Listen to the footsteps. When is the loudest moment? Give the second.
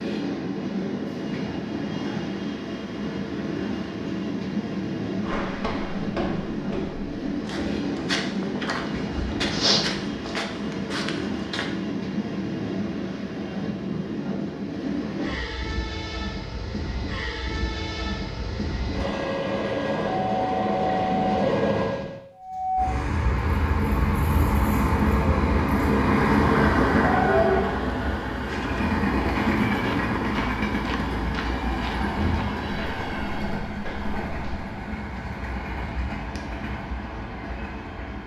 10 s.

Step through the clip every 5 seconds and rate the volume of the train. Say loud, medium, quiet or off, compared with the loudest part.
medium, medium, medium, medium, loud, loud, medium, quiet.